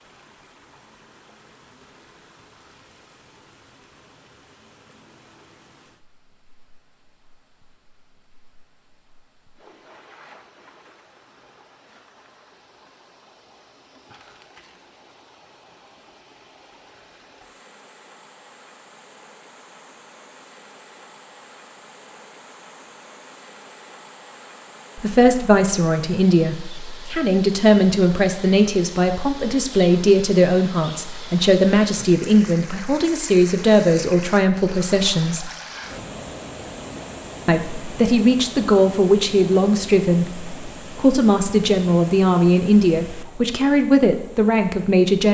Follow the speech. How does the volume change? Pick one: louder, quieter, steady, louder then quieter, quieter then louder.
steady.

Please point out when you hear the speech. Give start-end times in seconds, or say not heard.
24.9-35.5, 37.5-45.2.